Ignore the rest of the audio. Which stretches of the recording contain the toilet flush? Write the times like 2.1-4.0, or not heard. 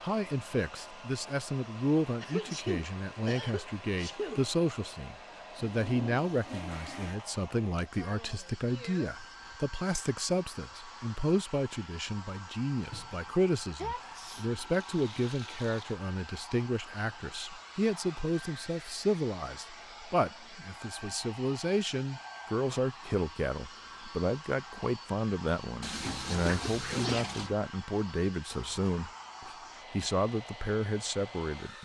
5.7-7.2, 14.1-16.0, 25.8-27.6.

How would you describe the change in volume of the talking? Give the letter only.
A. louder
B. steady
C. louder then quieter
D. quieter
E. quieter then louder
B.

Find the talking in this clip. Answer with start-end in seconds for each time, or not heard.
0.0-31.8.